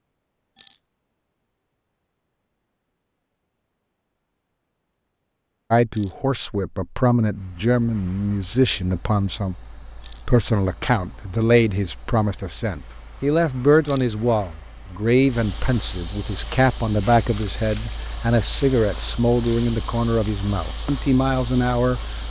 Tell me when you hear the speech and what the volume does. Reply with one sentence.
The speech can be heard from 5.7 to 22.2 s, at a steady volume.